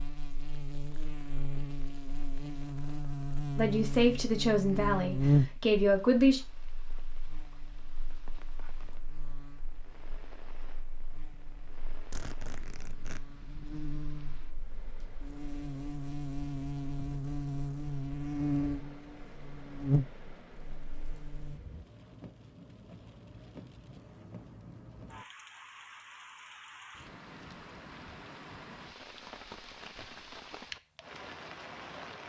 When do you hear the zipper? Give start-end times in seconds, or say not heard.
11.3-13.2.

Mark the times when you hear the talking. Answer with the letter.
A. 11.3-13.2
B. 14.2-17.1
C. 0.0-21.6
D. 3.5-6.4
D.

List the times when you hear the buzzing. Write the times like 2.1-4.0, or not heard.
0.0-21.6.